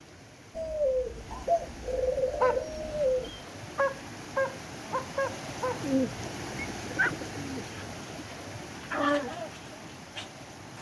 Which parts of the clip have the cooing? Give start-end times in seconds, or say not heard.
0.6-3.4, 5.8-7.7.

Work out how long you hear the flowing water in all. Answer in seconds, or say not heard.
11 s.